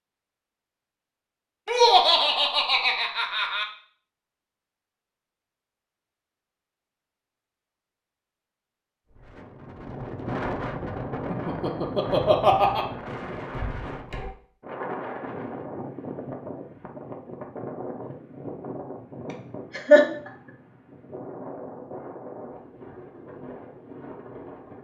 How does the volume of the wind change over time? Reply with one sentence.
The loudness of the wind goes down.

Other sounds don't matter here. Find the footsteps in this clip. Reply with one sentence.
You can't hear the footsteps here.